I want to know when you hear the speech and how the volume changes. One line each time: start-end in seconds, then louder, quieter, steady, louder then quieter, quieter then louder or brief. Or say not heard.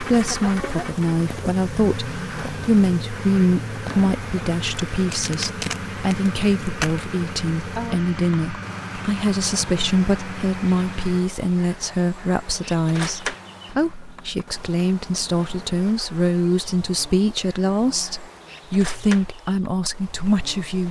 0.0-20.8 steady.